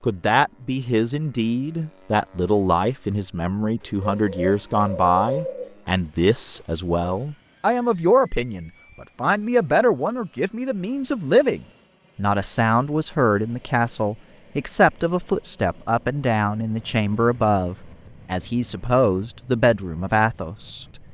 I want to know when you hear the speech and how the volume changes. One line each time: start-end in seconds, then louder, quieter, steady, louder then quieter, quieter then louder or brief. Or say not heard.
0.0-21.0 steady.